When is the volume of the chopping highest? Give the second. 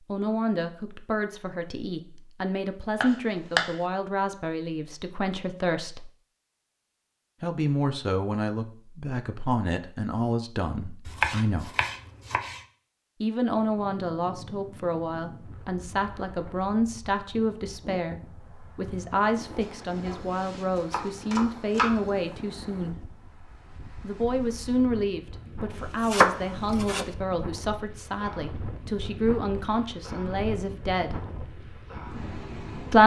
26 s.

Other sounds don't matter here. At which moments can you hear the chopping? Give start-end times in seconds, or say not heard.
3.0-3.8, 11.1-12.6, 19.6-22.1, 26.0-27.1.